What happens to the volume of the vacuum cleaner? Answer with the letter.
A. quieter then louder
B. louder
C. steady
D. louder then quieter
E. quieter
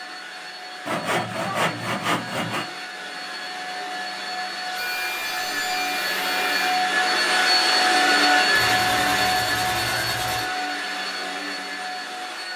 D.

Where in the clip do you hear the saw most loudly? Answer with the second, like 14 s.
2 s.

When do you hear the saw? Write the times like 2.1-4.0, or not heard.
0.8-2.6, 4.7-6.7, 8.6-10.5.